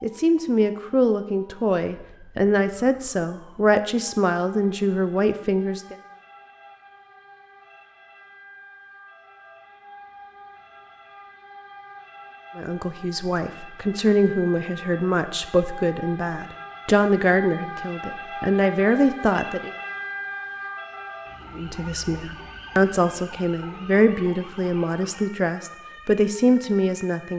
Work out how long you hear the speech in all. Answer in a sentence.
You can hear the speech for 19 seconds altogether.